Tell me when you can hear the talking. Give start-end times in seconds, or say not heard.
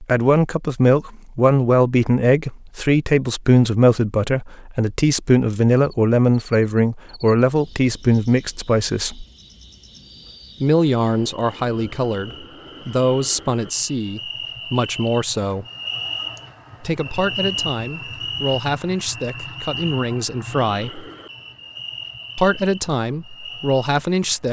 0.0-9.2, 10.6-15.7, 16.8-21.1, 22.4-24.4.